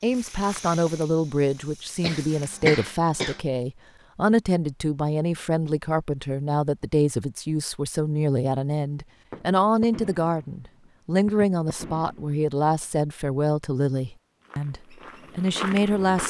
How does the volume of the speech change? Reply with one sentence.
The volume of the speech stays about the same.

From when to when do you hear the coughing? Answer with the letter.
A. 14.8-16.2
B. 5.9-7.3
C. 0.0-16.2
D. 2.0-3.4
D.